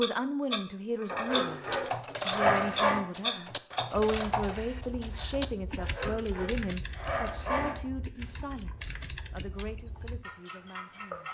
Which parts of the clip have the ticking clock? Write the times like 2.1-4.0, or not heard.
0.0-11.2.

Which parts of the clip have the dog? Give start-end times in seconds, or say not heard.
1.1-3.0, 5.8-7.8.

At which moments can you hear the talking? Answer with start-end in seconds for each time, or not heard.
0.0-11.2.